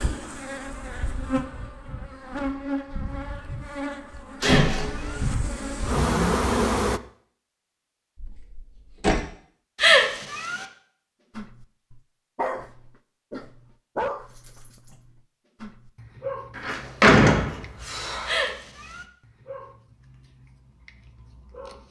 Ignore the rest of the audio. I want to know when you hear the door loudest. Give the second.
17 s.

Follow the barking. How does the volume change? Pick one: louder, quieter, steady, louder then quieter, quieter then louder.
quieter.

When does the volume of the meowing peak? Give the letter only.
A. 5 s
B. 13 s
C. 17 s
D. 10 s
D.